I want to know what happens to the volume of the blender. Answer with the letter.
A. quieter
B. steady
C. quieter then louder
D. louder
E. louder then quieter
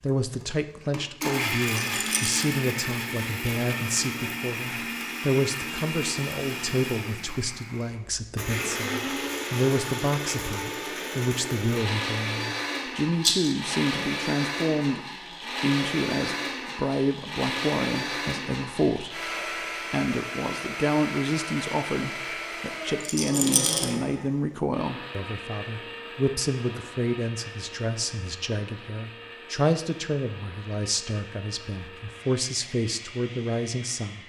A.